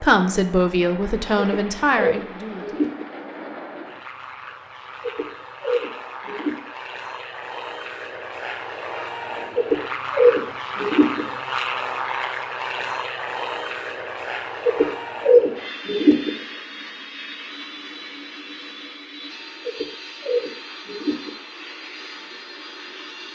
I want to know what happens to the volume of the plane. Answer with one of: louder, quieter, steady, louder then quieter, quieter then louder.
louder then quieter.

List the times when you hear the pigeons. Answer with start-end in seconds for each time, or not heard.
1.4-3.0, 5.0-6.5, 9.6-11.2, 14.7-16.3, 19.6-21.3.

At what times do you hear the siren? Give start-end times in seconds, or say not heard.
not heard.